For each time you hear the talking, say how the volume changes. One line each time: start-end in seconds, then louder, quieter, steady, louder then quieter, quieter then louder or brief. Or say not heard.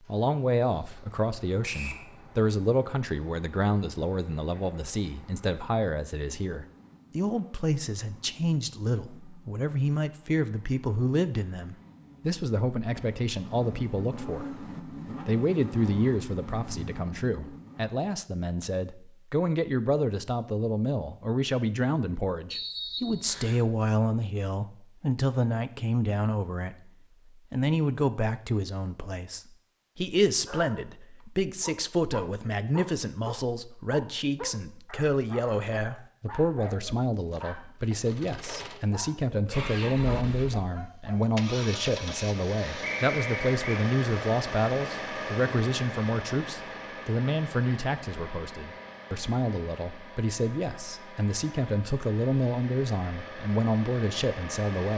0.1-14.6 steady
15.2-26.8 steady
27.5-54.9 steady.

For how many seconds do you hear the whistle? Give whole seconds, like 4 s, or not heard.
2 s.